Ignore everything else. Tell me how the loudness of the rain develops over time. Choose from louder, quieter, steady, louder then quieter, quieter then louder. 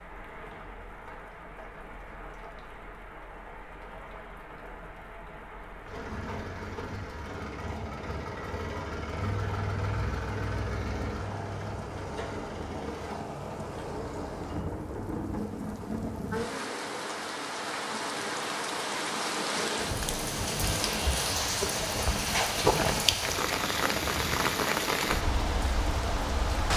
louder.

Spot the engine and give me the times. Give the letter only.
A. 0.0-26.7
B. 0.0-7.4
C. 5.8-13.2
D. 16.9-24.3
C.